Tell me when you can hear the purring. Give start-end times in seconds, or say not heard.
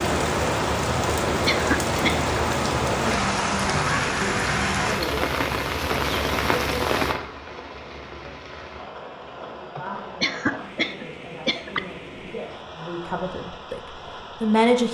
not heard.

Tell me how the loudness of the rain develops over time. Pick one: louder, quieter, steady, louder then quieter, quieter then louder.
quieter.